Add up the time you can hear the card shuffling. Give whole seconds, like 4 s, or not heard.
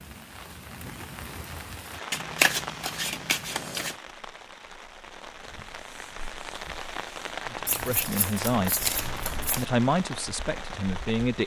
4 s.